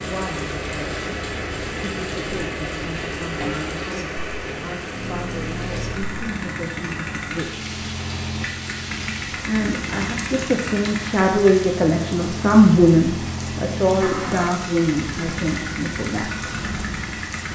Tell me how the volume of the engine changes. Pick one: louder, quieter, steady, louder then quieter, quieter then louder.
steady.